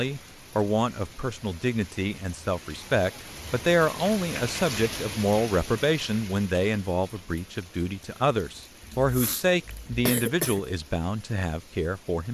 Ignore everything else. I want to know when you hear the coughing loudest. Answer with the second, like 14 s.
10 s.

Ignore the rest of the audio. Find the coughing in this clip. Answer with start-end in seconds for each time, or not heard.
8.8-10.6.